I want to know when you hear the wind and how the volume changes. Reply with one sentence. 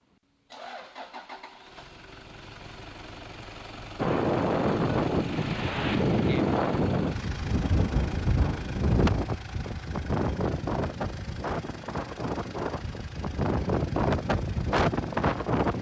You can hear the wind from 4.0 to 15.7 s, getting quieter then louder.